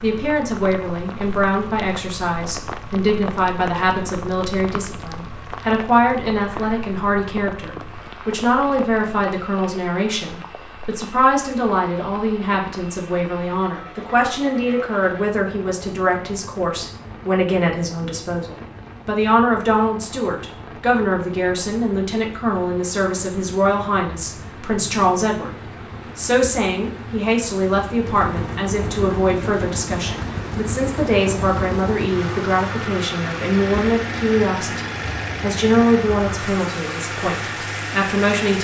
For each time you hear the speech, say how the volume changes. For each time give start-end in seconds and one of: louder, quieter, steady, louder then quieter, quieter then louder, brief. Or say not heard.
0.0-38.5 steady.